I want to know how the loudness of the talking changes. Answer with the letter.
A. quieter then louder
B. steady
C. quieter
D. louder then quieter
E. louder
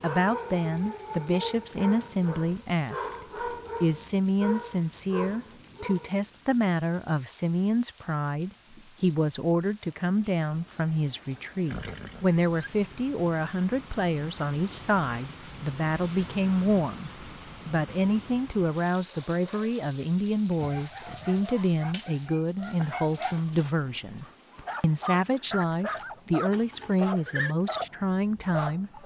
B.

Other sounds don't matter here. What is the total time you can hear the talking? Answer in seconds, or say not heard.
29 s.